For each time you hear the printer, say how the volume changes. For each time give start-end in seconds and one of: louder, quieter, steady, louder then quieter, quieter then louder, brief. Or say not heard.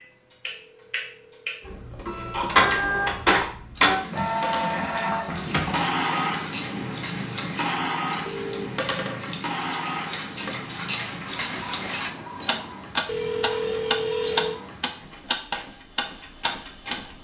1.6-17.1 quieter.